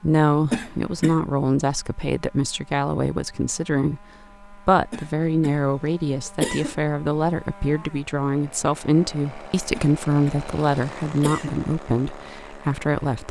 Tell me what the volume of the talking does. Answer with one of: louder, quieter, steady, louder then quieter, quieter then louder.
steady.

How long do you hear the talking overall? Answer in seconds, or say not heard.
13 s.